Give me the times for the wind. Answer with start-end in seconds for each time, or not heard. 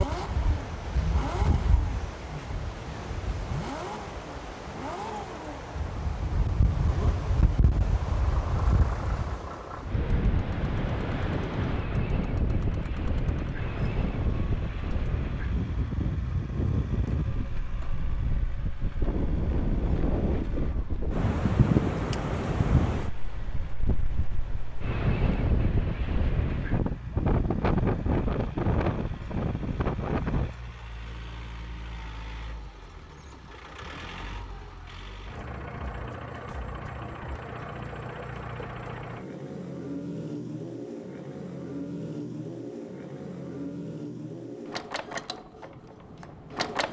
0.0-30.5.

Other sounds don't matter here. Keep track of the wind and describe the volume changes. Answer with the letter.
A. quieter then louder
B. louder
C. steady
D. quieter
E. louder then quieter
B.